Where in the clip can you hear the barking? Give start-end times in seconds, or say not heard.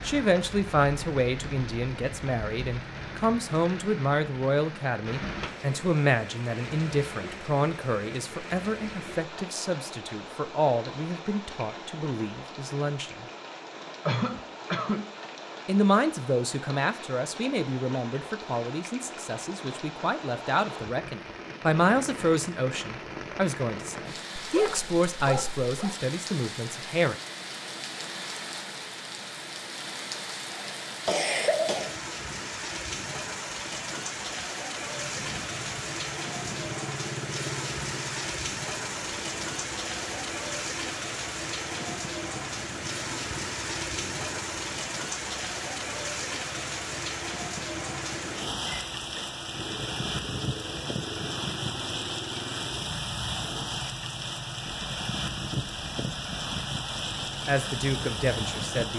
24.4-25.9.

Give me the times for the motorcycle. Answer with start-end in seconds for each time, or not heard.
34.8-58.9.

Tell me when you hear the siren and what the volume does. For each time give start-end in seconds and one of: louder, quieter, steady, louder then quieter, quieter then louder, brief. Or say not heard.
not heard.